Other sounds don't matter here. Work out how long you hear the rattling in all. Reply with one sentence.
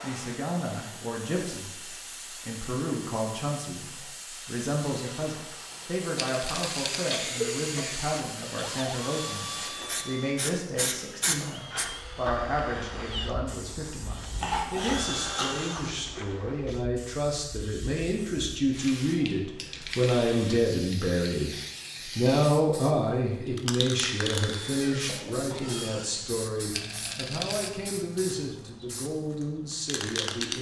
The rattling can be heard for 2 seconds in total.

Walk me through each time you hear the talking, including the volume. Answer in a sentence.
The talking can be heard from 0.0 to 21.6 s, getting louder; and from 22.1 to 30.5 s, getting quieter.